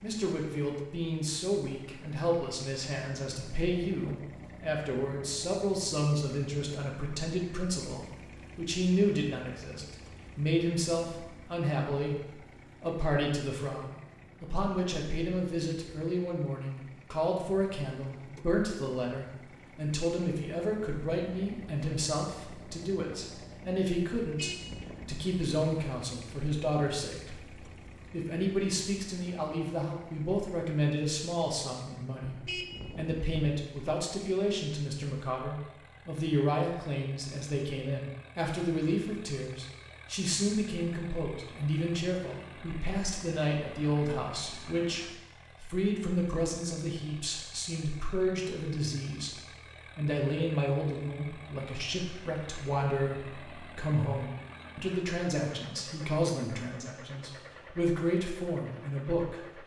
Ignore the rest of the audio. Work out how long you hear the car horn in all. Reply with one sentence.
You can hear the car horn for 2 seconds altogether.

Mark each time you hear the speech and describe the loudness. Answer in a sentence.
The speech can be heard from 0.0 to 59.6 s, at a steady volume.